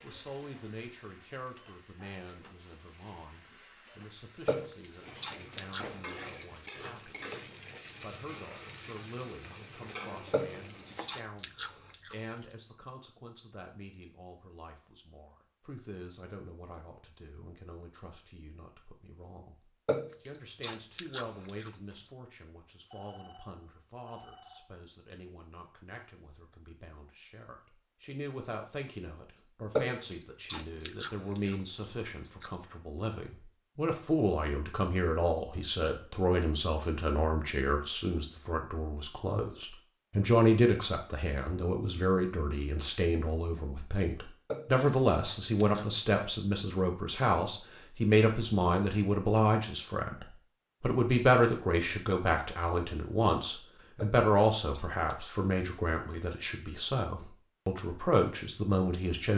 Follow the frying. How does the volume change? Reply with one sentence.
The volume of the frying goes up.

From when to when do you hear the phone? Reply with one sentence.
The phone can be heard from 22.9 to 24.8 s.